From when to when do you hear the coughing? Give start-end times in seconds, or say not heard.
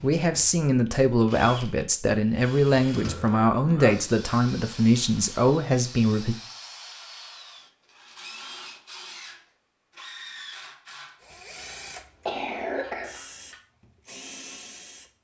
3.0-4.0, 11.6-13.6.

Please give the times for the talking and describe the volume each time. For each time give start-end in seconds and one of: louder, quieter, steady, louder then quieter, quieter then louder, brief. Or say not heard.
0.0-6.3 steady.